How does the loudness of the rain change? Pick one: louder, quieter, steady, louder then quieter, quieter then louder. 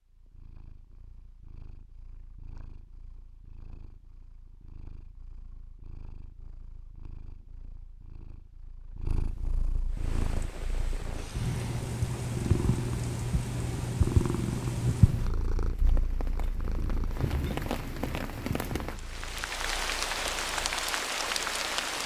louder.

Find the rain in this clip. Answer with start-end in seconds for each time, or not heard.
9.9-22.0.